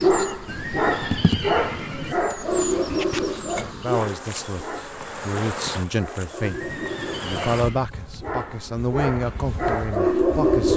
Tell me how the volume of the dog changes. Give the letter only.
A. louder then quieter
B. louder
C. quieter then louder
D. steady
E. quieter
C.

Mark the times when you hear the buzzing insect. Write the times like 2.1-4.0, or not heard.
0.0-10.7.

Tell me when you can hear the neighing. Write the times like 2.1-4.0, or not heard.
0.5-2.1, 6.4-7.8.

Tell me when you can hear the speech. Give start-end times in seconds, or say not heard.
3.7-10.7.